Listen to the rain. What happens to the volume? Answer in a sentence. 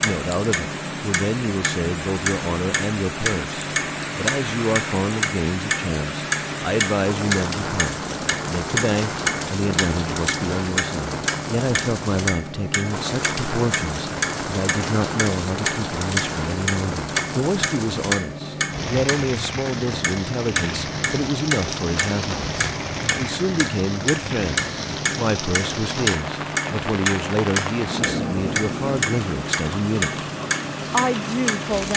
The volume of the rain stays about the same.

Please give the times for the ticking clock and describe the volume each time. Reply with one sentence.
You can hear the ticking clock from 0.0 to 31.9 s, at a steady volume.